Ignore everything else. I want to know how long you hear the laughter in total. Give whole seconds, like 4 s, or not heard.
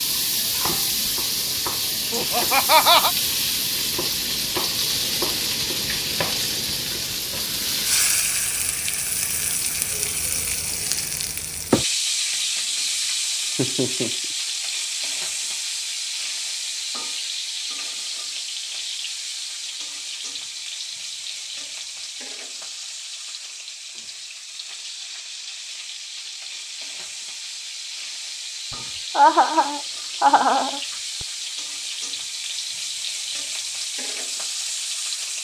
4 s.